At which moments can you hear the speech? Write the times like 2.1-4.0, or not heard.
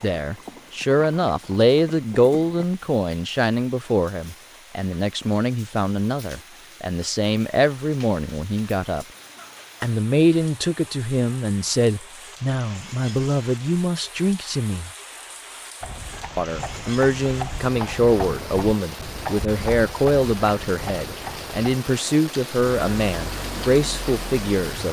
0.0-9.1, 9.8-14.9, 16.4-24.8.